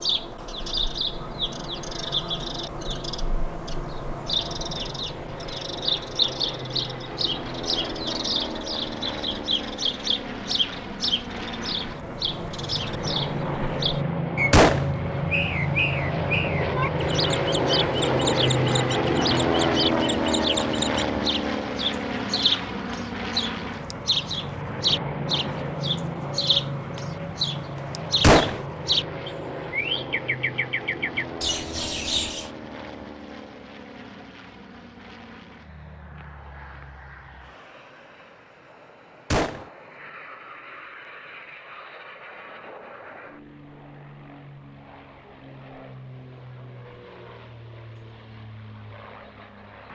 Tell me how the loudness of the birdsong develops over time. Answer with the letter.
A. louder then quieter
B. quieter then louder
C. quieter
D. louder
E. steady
E.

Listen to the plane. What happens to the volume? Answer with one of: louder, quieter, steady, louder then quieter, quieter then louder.
louder then quieter.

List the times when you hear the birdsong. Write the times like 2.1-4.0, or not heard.
0.0-32.5.